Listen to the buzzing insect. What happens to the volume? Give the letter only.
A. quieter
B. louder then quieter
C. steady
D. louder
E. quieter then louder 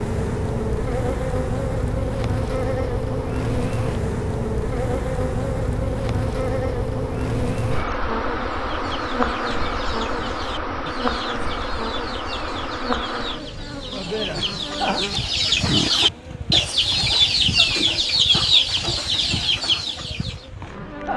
A.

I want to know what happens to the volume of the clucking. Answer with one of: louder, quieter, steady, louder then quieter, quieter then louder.
louder.